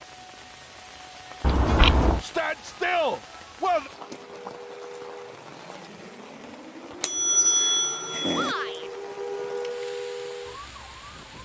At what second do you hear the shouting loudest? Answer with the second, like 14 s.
3 s.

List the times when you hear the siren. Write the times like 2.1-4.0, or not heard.
4.0-11.4.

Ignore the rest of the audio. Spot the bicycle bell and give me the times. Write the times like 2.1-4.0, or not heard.
1.4-2.2, 7.0-8.6.